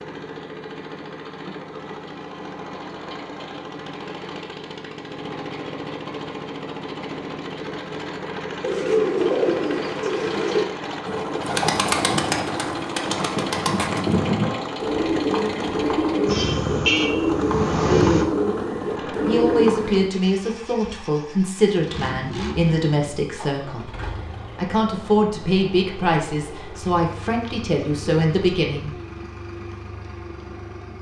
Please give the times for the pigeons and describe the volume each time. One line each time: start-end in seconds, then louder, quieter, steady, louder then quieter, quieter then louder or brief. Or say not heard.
8.6-20.1 steady.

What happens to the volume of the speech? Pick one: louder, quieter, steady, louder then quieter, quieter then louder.
steady.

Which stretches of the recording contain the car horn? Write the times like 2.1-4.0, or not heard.
16.2-18.2.